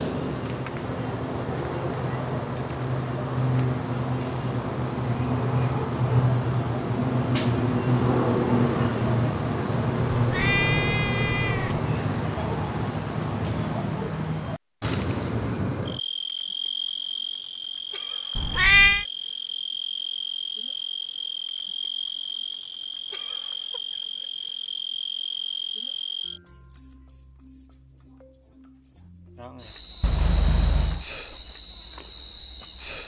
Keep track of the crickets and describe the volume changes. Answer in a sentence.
The volume of the crickets goes down.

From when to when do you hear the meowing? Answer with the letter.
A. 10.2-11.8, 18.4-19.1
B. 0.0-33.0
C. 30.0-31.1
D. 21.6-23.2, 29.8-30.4
A.